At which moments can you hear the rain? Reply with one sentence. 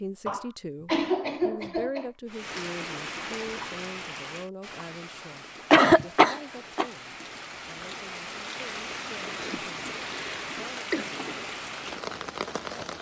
You can hear the rain from 2.2 to 12.9 s.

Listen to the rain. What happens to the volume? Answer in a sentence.
The volume of the rain goes down, then up.